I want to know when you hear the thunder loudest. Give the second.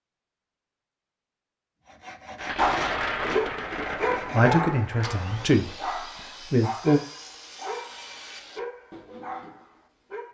3 s.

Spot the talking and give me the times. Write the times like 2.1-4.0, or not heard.
4.3-5.7, 6.5-7.0.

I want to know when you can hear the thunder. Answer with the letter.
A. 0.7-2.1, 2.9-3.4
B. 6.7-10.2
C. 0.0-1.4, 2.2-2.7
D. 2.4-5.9
D.